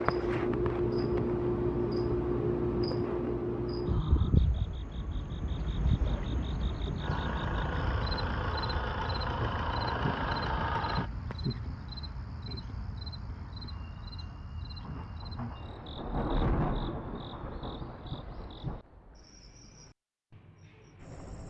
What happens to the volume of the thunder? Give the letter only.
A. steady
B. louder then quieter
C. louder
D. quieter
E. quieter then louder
B.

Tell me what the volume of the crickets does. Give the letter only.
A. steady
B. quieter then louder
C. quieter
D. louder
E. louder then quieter
C.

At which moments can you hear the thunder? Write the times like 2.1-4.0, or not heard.
14.8-18.8.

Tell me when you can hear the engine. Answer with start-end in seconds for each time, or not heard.
7.0-11.1.